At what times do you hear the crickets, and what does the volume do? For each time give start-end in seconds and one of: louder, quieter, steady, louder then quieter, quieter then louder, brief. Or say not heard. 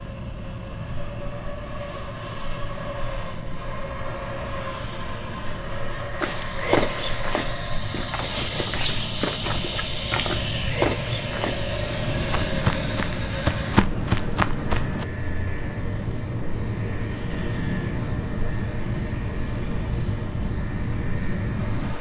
0.0-21.9 louder.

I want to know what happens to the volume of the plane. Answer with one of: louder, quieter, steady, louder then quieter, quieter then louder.
louder then quieter.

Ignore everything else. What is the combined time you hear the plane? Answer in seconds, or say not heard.
22 s.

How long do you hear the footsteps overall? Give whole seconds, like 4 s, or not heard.
9 s.